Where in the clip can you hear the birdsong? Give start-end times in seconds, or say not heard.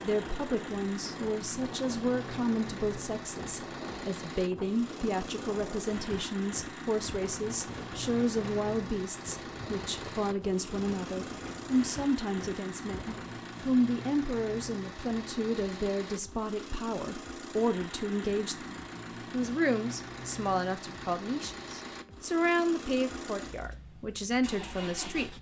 not heard.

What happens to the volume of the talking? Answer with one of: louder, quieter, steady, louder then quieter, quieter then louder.
steady.